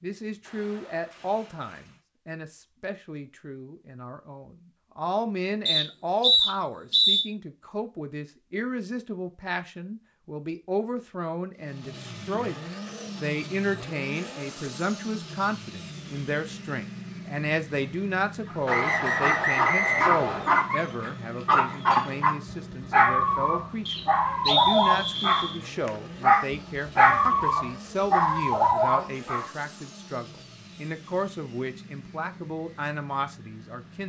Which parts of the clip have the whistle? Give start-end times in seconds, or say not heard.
5.7-7.2, 18.6-20.5, 23.9-25.6.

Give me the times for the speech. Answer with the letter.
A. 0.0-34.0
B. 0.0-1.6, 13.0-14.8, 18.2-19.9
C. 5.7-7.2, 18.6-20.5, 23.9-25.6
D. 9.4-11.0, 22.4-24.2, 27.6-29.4
A.